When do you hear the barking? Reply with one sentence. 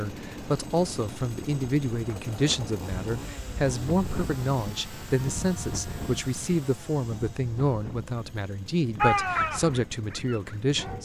You can hear the barking from 9.0 to 10.9 s.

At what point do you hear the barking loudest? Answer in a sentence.
The loudest moment of the barking is at 9 seconds.